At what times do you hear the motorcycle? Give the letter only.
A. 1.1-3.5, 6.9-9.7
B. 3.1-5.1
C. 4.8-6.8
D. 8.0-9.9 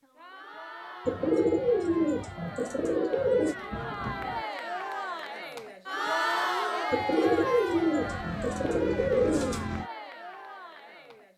D.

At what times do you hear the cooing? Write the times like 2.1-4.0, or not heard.
1.1-3.5, 6.9-9.7.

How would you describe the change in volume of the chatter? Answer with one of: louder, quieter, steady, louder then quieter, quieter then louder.
louder then quieter.